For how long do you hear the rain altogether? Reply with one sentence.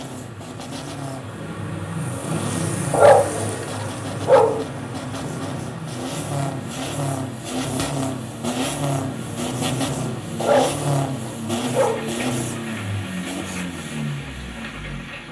You can hear the rain for 15 seconds altogether.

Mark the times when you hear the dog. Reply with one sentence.
The dog can be heard from 2.9 to 4.7 s and from 10.4 to 12.1 s.